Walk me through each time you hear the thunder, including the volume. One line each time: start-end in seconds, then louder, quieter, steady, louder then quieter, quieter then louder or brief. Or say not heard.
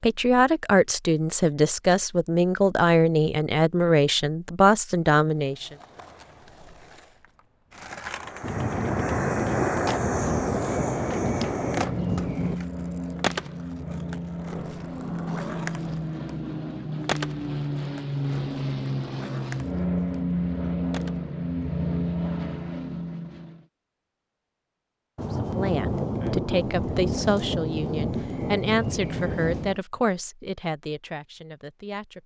8.4-12.6 steady
25.1-29.8 steady.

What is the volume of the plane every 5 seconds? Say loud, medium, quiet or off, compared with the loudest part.
off, loud, loud, loud, loud, off, off.